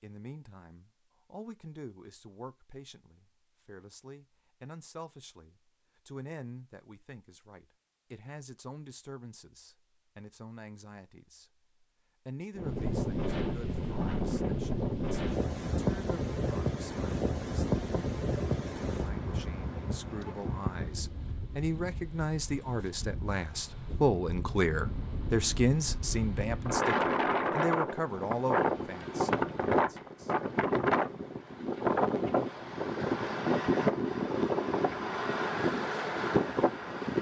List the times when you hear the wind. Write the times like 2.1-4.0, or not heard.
12.6-37.1.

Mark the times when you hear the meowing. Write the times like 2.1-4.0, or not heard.
not heard.